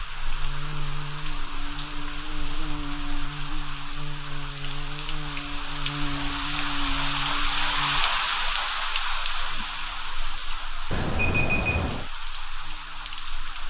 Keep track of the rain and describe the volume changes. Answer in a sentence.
The volume of the rain goes up, then down.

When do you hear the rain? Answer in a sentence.
You can hear the rain from 0.0 to 13.6 s.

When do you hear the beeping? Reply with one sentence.
The beeping can be heard from 10.9 to 12.1 s.